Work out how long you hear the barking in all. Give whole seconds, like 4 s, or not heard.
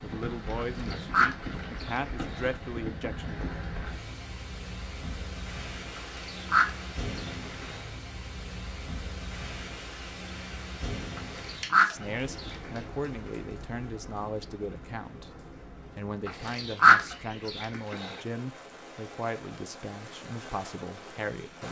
not heard.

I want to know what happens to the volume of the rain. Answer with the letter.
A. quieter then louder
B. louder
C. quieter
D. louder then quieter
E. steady
C.